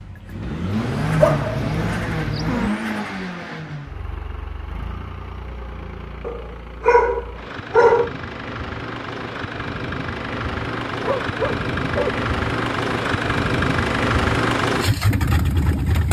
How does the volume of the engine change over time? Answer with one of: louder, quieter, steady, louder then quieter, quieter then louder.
quieter then louder.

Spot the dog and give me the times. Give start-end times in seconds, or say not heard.
0.7-2.7, 6.2-8.1, 11.0-12.2.